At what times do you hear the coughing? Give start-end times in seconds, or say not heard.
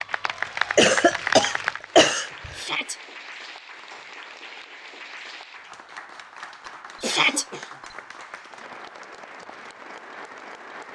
0.8-2.5, 6.7-8.0.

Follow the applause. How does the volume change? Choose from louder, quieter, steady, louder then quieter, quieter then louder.
quieter.